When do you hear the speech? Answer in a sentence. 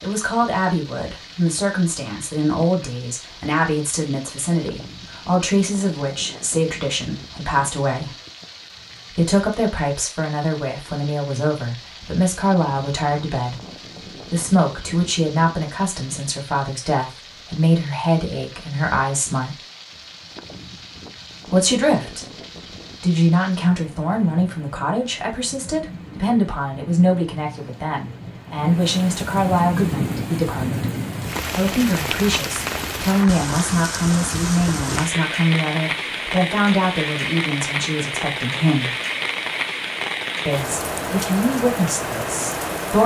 The speech can be heard from 0.0 to 8.2 s, from 9.2 to 19.6 s, from 21.4 to 22.4 s, from 23.0 to 30.9 s, from 31.6 to 39.0 s and from 40.5 to 43.0 s.